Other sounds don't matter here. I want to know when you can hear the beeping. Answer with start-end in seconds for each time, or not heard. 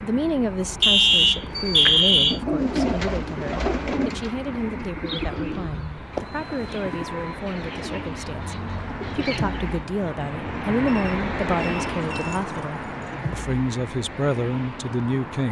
0.8-2.4, 6.2-7.3, 10.8-12.4.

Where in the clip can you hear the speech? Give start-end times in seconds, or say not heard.
0.0-15.4.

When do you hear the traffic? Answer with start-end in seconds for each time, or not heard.
0.0-15.4.